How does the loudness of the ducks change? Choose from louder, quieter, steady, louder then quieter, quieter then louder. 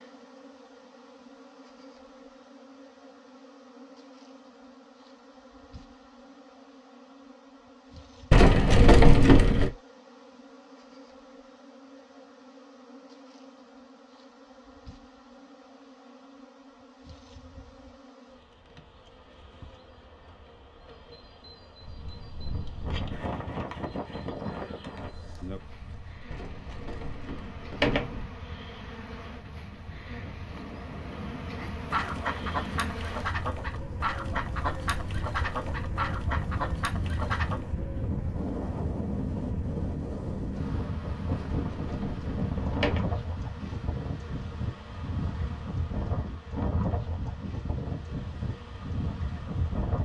steady.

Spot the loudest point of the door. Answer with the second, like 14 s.
9 s.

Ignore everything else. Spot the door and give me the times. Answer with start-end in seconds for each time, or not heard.
8.3-9.7, 26.3-28.2, 41.3-43.0.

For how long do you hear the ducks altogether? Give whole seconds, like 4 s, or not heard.
6 s.